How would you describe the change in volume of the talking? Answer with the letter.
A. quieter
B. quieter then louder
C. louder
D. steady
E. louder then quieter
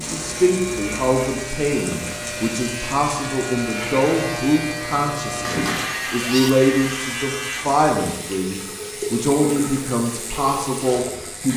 D.